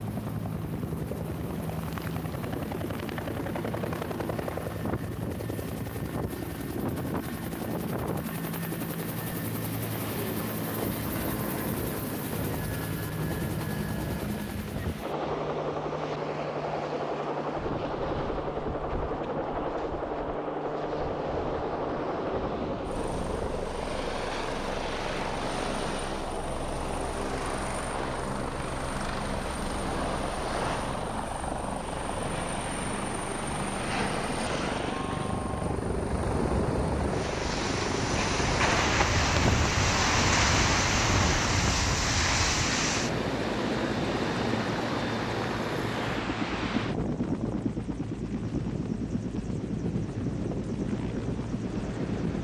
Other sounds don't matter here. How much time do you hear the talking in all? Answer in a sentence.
You can't hear the talking here.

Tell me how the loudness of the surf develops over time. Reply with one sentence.
The loudness of the surf goes up, then down.